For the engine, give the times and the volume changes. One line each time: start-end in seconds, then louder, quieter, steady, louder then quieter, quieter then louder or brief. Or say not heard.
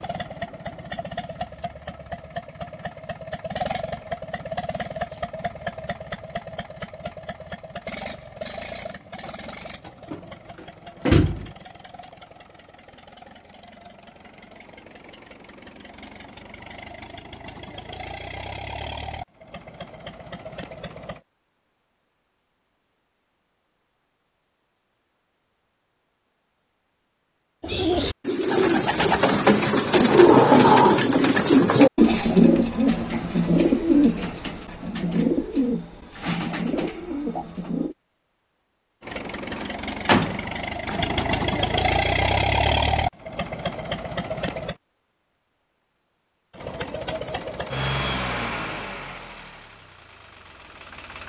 0.0-21.2 quieter then louder
39.0-44.8 louder then quieter
46.5-51.2 louder then quieter.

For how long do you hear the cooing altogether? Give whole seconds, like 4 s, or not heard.
10 s.